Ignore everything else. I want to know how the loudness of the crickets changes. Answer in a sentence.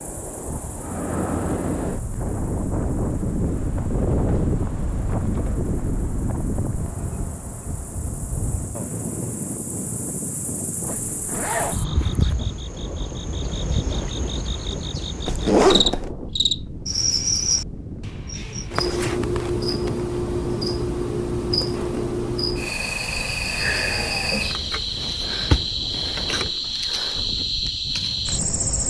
The volume of the crickets goes up.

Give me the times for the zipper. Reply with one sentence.
The zipper can be heard from 10.8 to 12.3 s and from 15.2 to 16.1 s.